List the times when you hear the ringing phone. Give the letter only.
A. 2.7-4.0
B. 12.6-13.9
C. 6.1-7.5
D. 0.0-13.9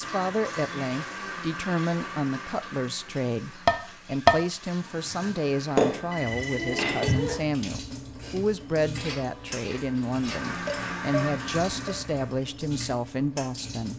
C.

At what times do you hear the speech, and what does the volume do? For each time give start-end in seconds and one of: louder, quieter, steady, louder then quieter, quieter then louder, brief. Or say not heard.
0.0-13.9 steady.